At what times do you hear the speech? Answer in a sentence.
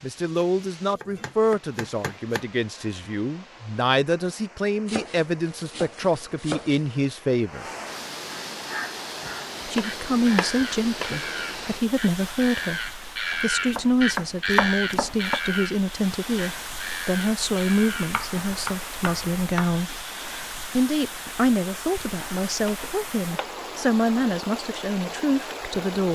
The speech can be heard from 0.0 to 7.7 s, from 9.7 to 20.1 s and from 20.8 to 26.0 s.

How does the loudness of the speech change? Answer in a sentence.
The loudness of the speech stays about the same.